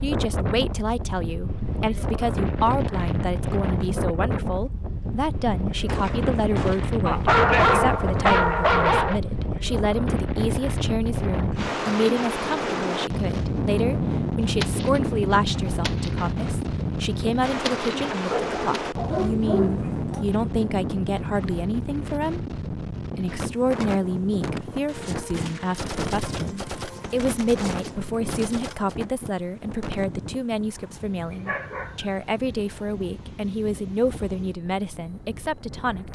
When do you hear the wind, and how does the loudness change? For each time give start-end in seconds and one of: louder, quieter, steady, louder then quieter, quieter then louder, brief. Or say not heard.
0.0-36.1 quieter.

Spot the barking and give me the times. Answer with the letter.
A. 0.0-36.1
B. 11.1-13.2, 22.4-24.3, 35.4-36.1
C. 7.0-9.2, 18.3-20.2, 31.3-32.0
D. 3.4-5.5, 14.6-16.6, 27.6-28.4
C.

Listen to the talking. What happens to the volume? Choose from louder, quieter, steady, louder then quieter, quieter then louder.
steady.